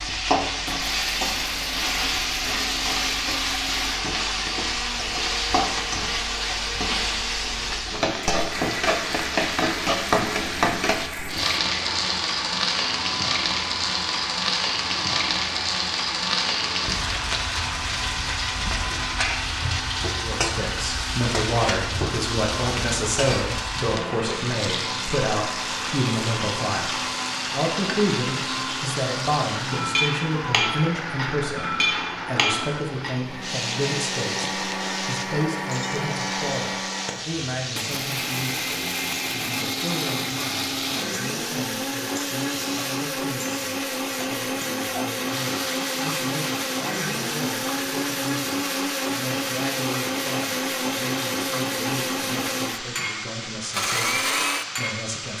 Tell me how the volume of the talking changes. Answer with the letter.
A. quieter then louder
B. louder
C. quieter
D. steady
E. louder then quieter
C.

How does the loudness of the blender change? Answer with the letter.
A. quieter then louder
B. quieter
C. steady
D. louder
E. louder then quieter
D.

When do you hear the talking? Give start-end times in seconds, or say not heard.
20.2-55.3.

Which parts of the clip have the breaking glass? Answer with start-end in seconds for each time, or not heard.
not heard.